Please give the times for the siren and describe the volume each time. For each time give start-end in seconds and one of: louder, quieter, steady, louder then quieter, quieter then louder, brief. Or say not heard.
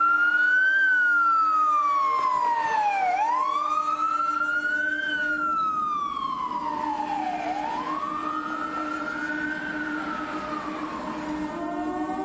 0.0-12.2 quieter.